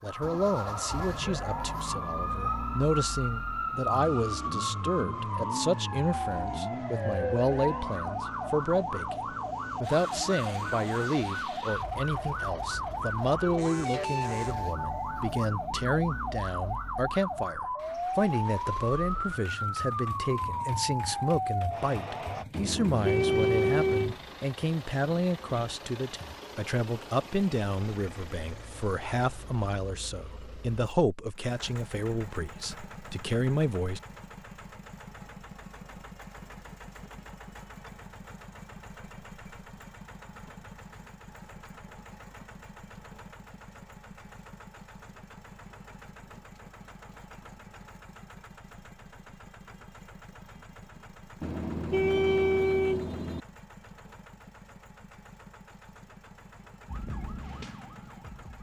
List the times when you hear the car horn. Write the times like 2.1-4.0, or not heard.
12.9-14.3, 22.5-24.1, 51.4-53.4.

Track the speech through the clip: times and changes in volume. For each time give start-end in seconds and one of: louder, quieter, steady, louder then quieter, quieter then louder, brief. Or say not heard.
0.0-34.0 steady.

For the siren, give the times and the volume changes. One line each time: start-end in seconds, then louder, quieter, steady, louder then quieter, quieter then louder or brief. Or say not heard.
0.0-22.4 steady
56.9-58.5 brief.